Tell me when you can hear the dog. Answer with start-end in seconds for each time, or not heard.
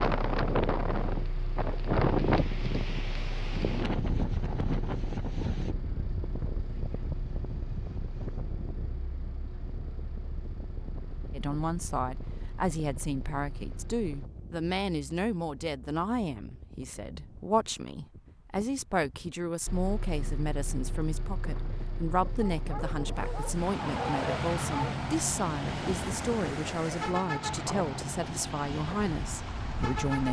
22.2-24.9.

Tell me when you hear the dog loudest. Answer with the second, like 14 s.
24 s.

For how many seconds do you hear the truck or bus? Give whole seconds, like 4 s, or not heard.
25 s.